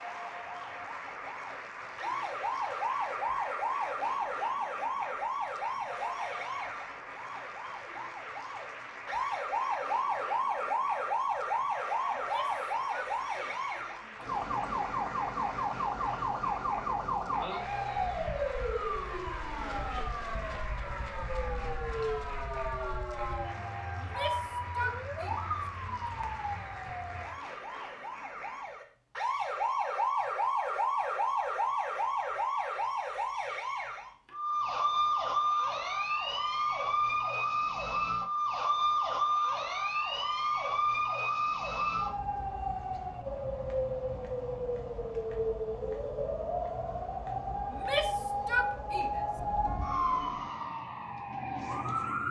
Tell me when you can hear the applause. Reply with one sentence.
You can hear the applause from 0.0 to 28.7 s.